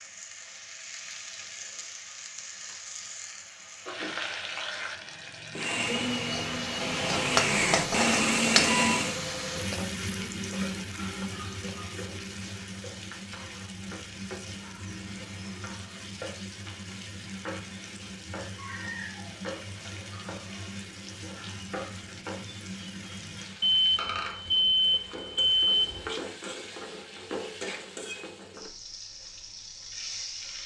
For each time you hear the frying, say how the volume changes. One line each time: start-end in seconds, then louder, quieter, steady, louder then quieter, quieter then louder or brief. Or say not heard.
0.0-30.6 louder then quieter.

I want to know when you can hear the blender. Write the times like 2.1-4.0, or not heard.
5.5-9.2.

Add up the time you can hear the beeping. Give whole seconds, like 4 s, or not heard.
3 s.